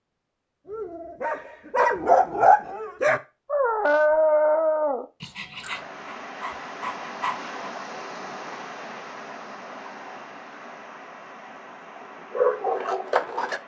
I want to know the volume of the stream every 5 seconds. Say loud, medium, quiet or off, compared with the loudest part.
off, loud, medium.